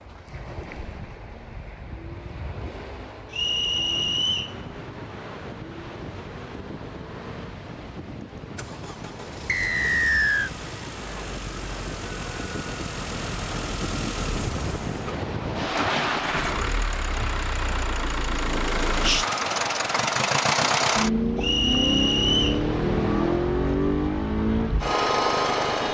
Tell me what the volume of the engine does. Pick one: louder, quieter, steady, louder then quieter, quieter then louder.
louder.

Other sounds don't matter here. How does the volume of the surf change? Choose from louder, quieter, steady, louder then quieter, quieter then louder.
louder then quieter.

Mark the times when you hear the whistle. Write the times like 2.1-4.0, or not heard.
3.3-4.5, 9.4-10.5, 21.4-22.6.